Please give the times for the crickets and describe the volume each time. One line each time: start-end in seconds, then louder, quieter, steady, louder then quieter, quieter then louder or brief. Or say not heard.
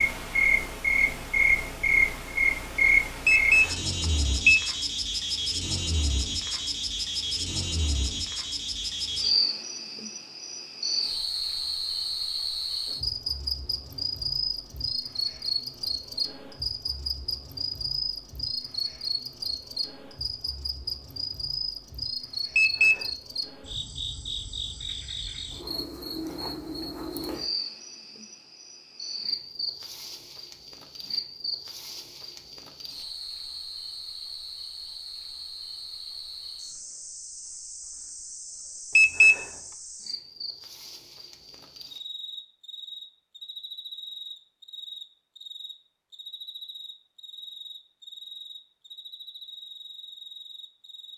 0.0-51.1 quieter.